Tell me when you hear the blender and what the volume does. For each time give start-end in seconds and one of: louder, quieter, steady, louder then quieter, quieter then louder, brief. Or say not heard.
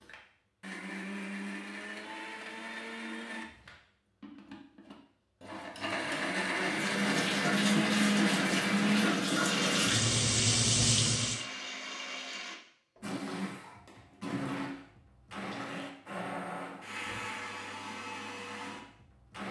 0.0-19.4 louder then quieter.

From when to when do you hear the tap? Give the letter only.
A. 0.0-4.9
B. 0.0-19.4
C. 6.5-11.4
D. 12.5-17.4
C.